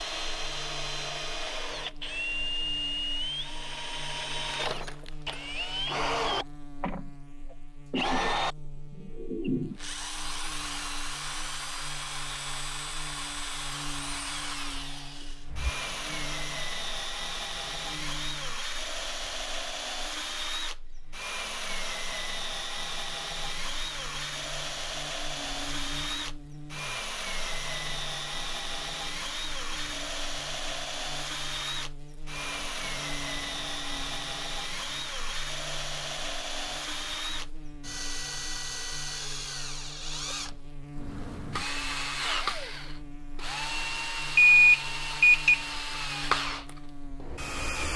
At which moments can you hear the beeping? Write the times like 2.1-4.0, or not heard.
44.4-45.6.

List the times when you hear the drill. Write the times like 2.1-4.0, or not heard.
0.0-47.9.